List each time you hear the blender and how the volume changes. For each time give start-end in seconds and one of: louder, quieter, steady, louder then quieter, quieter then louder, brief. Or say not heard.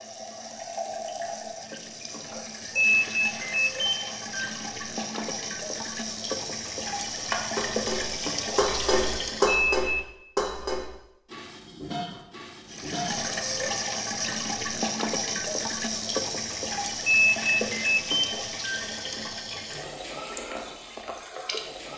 not heard.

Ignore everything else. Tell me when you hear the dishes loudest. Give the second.
10 s.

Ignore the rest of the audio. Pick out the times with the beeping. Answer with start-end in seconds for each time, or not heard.
2.8-4.5, 9.4-10.1, 17.1-18.8.